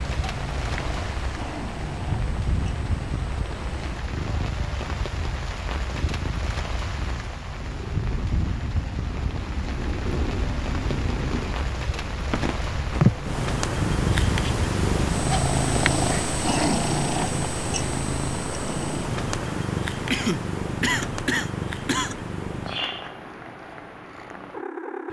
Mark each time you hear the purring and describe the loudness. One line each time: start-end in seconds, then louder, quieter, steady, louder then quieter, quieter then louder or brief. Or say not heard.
0.0-25.0 louder then quieter.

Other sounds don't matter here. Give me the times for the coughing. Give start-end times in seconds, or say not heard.
20.1-22.1.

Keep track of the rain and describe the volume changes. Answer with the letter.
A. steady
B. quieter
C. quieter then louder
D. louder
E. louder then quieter
A.